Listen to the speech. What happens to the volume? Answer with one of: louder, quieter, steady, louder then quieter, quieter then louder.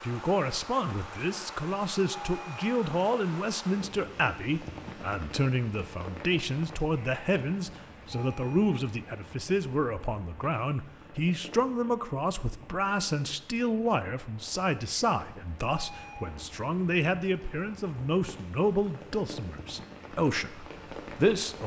steady.